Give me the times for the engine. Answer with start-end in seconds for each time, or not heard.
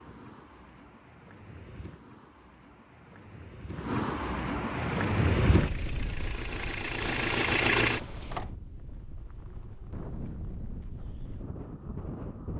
4.7-8.5.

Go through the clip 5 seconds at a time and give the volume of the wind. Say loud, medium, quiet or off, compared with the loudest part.
loud, loud, medium.